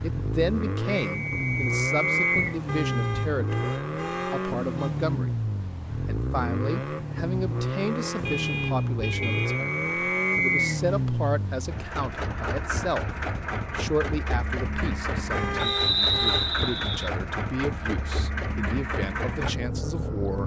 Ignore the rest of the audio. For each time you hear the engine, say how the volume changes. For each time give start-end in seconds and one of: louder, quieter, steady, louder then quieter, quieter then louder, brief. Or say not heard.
0.0-20.4 steady.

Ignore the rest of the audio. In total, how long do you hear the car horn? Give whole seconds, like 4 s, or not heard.
5 s.